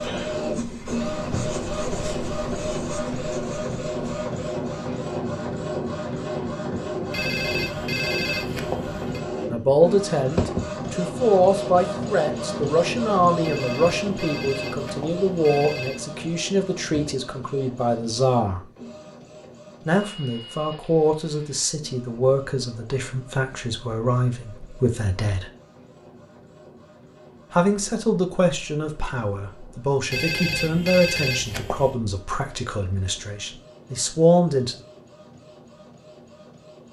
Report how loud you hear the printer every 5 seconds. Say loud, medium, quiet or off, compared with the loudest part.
loud, loud, loud, medium, quiet, quiet, quiet, quiet.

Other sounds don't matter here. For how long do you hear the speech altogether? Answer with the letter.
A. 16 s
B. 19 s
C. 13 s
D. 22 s
D.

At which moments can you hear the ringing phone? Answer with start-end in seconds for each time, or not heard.
7.1-9.2, 13.4-16.0, 30.1-31.9.